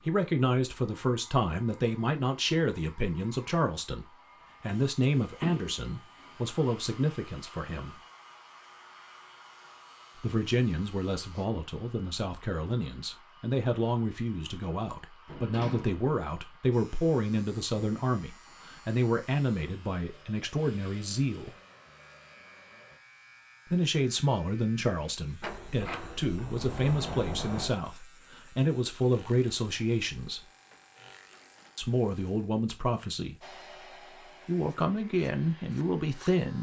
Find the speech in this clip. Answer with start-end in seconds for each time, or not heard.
0.0-8.0, 10.2-21.6, 23.6-30.4, 31.8-33.5, 34.5-36.5.